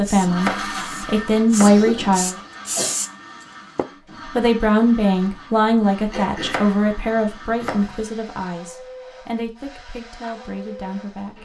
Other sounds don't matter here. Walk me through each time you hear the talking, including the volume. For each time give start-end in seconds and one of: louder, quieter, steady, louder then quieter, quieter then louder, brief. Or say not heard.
0.0-2.4 brief
4.3-11.4 quieter.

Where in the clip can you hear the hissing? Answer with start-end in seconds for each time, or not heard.
0.0-3.9.